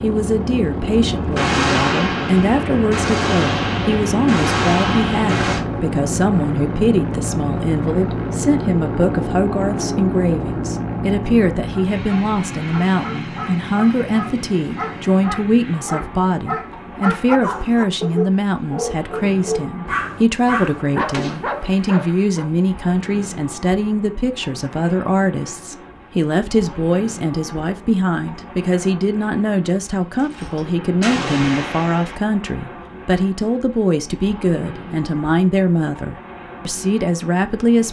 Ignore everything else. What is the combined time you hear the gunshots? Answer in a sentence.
The gunshots can be heard for 8 seconds in total.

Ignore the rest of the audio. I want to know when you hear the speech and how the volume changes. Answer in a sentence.
You can hear the speech from 0.0 to 37.8 s, at a steady volume.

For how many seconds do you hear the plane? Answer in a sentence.
You can hear the plane for 38 seconds altogether.